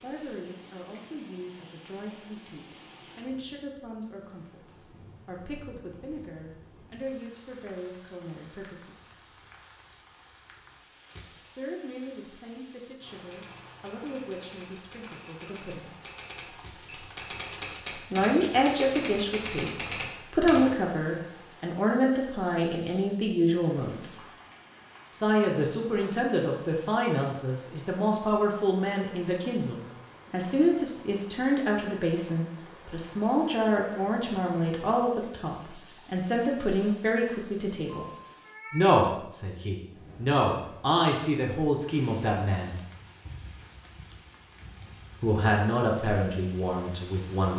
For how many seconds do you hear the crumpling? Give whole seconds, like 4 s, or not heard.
2 s.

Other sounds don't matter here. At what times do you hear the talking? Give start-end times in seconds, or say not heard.
0.0-9.2, 11.4-15.9, 18.1-24.2, 25.1-38.0, 38.7-42.8, 45.2-47.5.